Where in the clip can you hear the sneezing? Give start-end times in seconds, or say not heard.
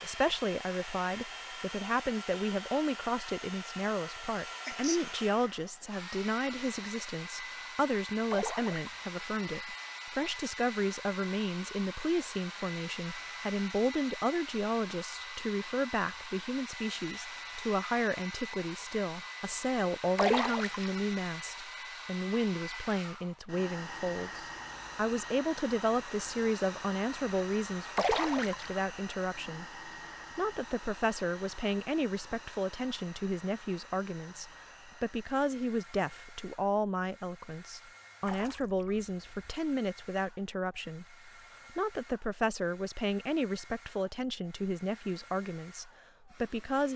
4.6-5.1.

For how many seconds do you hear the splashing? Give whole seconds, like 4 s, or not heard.
4 s.